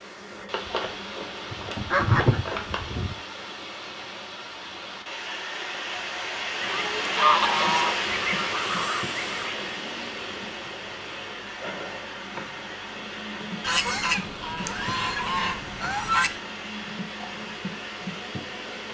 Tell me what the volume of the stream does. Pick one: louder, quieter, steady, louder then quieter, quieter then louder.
louder then quieter.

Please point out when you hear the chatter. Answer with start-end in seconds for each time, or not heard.
not heard.